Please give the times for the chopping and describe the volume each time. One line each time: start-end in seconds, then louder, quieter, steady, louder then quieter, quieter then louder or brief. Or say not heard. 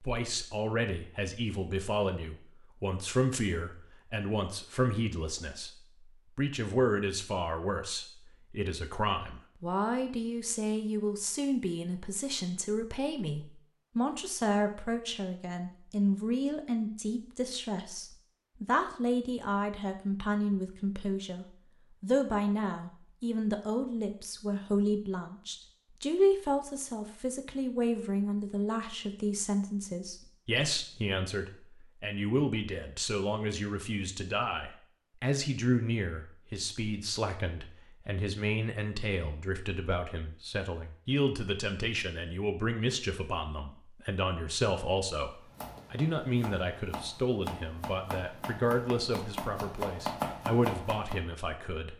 45.4-51.2 louder.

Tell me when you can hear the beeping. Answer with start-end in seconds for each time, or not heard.
not heard.